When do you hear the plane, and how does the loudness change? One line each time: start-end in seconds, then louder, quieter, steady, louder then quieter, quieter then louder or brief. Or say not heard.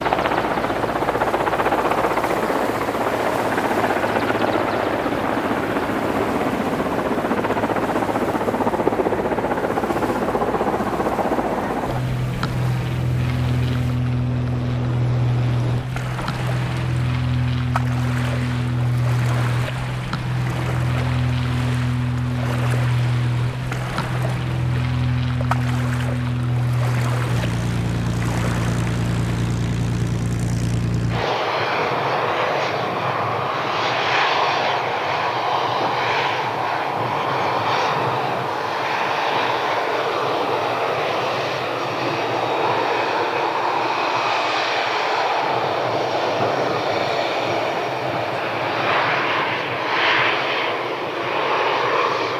0.0-52.3 steady.